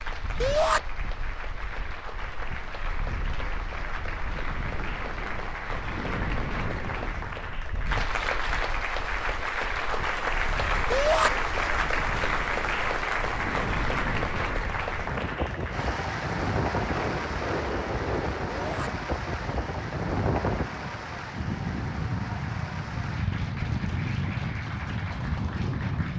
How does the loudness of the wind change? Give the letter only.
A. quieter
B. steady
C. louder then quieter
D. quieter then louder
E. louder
E.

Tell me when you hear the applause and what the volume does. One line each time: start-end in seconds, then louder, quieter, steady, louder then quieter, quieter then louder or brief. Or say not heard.
0.0-26.1 louder then quieter.